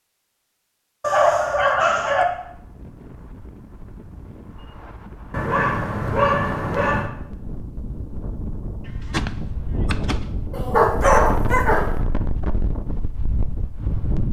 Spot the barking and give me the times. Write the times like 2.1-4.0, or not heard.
1.0-2.2, 5.3-7.1, 10.5-11.9.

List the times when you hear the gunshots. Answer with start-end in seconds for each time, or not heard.
8.8-10.5.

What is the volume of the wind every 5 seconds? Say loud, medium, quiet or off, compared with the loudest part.
quiet, medium, loud.